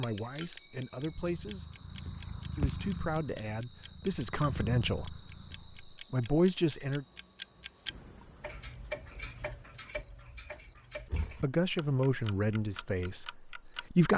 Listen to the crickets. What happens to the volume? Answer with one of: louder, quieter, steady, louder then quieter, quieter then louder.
quieter.